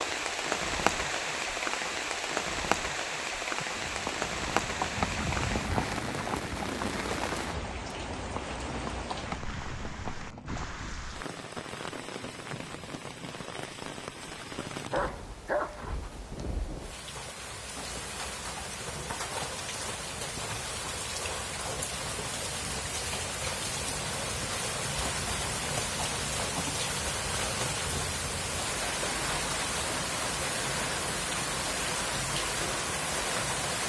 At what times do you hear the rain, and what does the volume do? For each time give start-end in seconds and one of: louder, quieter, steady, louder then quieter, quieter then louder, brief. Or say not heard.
0.0-33.8 quieter then louder.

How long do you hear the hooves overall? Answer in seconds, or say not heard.
7 s.